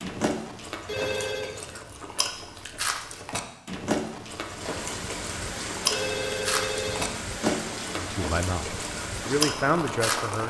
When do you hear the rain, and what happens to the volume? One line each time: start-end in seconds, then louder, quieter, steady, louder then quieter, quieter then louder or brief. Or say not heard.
4.3-10.4 steady.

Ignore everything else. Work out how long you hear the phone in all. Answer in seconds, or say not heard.
2 s.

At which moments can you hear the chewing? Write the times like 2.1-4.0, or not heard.
0.0-10.4.